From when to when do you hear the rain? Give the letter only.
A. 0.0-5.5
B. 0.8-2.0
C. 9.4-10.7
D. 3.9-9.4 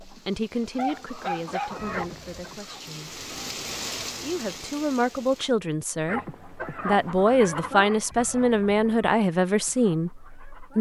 A.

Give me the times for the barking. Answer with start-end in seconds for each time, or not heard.
0.8-2.0.